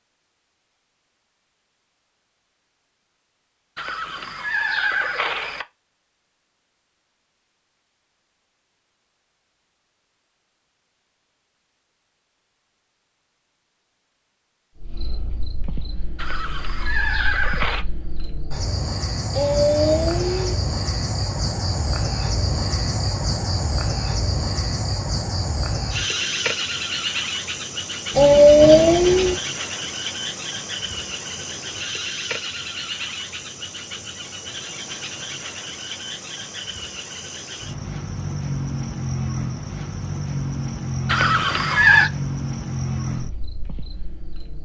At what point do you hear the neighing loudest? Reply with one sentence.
The loudest moment of the neighing is at 42 seconds.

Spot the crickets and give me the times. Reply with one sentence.
The crickets can be heard from 14.8 to 44.6 s.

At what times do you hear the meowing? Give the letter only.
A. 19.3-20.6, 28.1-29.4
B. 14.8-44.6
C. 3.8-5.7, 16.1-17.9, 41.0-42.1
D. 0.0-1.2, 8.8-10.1
A.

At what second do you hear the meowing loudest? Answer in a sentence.
The volume of the meowing peaks at 29 seconds.